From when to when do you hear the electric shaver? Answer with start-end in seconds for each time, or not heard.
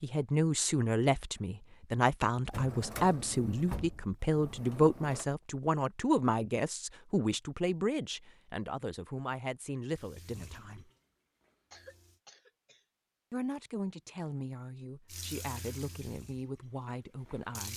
not heard.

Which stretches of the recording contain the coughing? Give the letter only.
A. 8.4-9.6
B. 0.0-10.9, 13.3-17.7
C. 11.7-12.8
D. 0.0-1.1
C.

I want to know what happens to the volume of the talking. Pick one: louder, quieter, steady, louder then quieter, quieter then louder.
quieter.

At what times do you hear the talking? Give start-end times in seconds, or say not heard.
0.0-10.9, 13.3-17.7.